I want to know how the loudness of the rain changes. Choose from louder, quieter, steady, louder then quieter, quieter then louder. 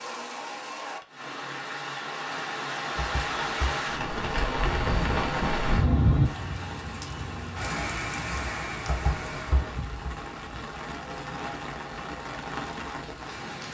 louder then quieter.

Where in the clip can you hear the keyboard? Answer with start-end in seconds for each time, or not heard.
3.0-3.8, 8.8-9.8.